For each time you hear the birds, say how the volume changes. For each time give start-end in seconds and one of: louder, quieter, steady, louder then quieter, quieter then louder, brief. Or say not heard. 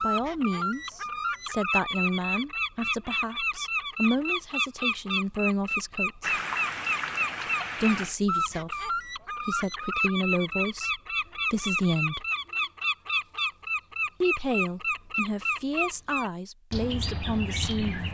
0.0-18.1 steady.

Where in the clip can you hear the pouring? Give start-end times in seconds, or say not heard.
6.2-8.2.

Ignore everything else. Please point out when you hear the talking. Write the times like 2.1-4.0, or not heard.
0.0-6.3, 7.8-10.9, 11.5-12.2, 14.2-18.1.